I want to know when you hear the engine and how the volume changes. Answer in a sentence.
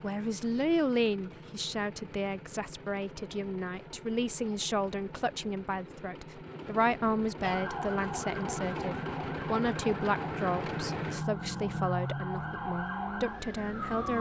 You can hear the engine from 0.0 to 14.1 s, getting louder.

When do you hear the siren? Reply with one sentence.
You can hear the siren from 7.4 to 14.1 s.